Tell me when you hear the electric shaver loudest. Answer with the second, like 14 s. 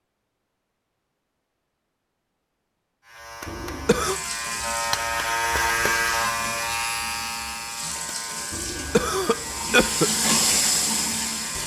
6 s.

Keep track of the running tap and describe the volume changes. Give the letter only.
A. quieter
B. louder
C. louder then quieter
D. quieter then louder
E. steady
B.